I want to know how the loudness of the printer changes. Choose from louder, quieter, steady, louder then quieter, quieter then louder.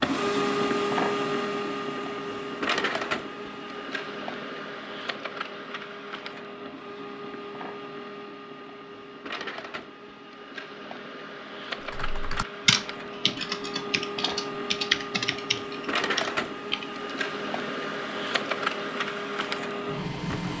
quieter then louder.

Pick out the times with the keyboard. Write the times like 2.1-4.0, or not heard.
11.8-16.9.